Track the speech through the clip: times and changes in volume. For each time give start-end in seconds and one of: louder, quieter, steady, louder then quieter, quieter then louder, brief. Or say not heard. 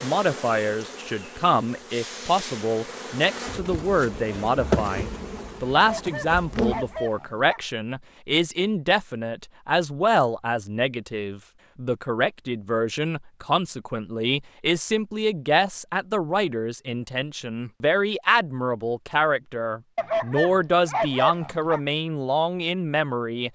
0.0-23.5 steady.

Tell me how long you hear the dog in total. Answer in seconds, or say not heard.
4 s.